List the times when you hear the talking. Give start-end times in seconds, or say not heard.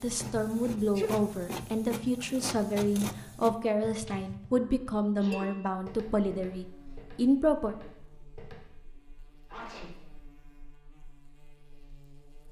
0.0-7.8.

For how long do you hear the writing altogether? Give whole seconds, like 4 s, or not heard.
not heard.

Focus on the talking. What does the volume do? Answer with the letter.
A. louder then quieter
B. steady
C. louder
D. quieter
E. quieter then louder
B.